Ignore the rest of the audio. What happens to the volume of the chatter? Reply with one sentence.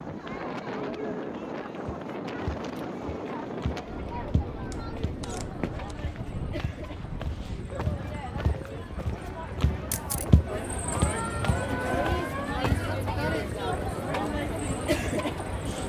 The loudness of the chatter goes up.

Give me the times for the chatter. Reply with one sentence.
You can hear the chatter from 0.0 to 15.8 s.